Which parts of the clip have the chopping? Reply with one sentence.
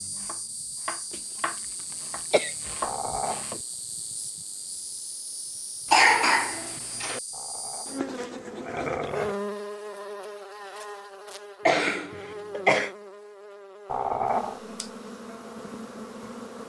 The chopping can be heard from 0.0 to 3.6 s.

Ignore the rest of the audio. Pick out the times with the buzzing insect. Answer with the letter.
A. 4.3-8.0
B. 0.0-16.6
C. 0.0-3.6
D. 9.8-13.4
B.